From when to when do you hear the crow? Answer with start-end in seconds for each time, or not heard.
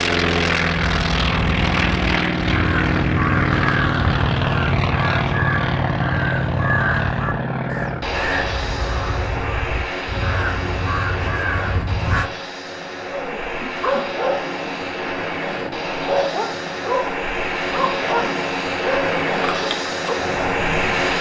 0.9-12.3.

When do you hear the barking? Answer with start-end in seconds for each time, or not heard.
13.1-21.1.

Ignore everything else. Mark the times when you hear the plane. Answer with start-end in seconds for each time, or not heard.
0.0-21.1.